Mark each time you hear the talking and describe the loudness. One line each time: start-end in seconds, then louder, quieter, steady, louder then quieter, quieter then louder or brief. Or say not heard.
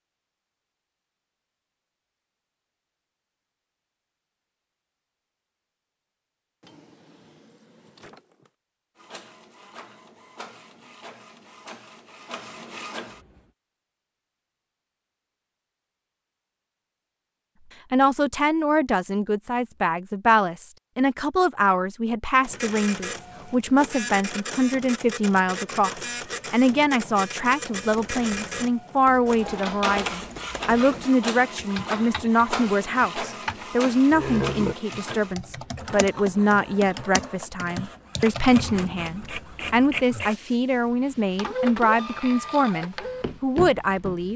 17.9-44.3 steady.